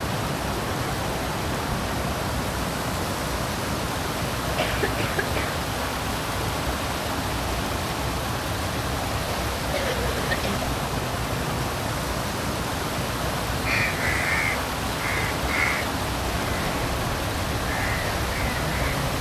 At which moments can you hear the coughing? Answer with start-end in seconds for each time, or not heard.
4.5-5.6, 9.7-10.6.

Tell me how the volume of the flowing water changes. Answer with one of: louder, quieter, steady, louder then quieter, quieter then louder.
steady.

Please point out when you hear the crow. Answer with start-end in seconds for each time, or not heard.
13.7-19.1.